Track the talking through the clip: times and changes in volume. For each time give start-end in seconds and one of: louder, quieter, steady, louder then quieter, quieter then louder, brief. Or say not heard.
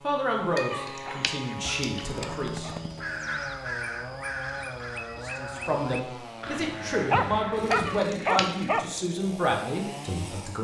0.0-2.7 brief
5.2-10.6 steady.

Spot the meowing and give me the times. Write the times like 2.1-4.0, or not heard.
0.6-2.2, 7.7-8.8.